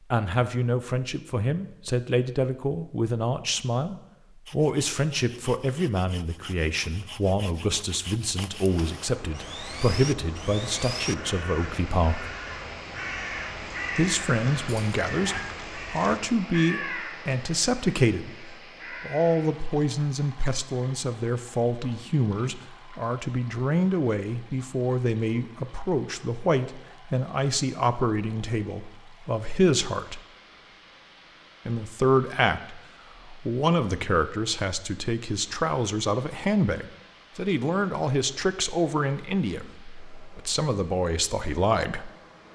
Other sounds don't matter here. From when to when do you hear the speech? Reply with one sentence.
The speech can be heard from 0.1 to 12.3 s, from 13.9 to 30.2 s and from 31.6 to 42.1 s.